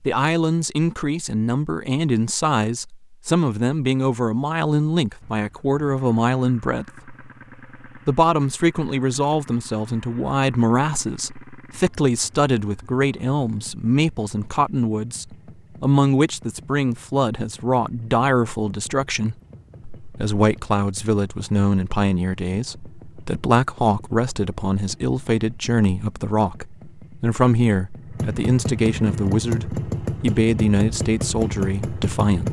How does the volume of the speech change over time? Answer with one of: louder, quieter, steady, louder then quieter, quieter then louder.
steady.